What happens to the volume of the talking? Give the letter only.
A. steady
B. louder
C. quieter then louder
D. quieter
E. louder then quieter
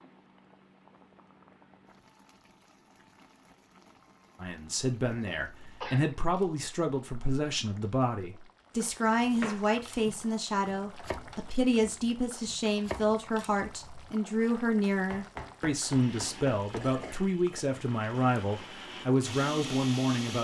A.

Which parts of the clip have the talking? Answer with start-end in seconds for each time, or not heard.
4.4-20.4.